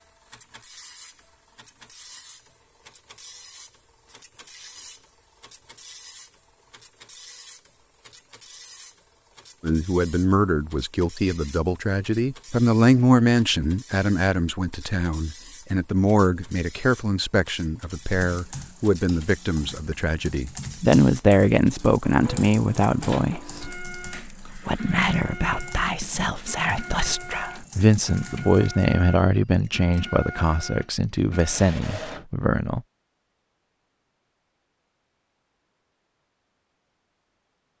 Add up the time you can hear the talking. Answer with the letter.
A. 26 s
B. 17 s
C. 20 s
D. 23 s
D.